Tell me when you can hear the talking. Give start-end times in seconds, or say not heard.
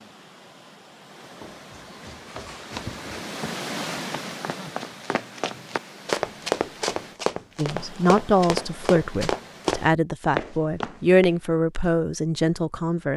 7.5-13.1.